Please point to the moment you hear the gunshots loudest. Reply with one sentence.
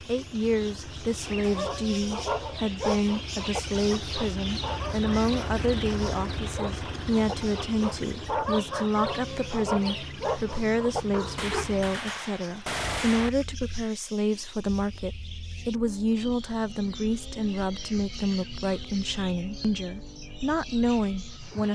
The loudest moment of the gunshots is at 13 seconds.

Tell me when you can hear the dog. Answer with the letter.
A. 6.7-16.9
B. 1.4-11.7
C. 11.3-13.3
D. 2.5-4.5
B.